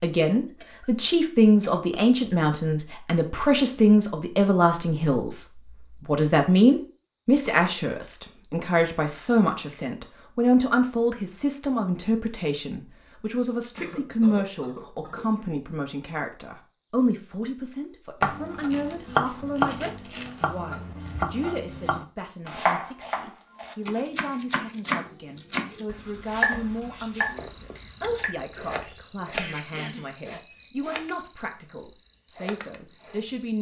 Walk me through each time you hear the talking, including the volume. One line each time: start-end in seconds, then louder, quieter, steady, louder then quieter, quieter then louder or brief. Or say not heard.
0.0-33.5 quieter.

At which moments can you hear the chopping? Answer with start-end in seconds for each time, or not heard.
18.2-28.3.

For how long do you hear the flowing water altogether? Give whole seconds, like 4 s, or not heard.
not heard.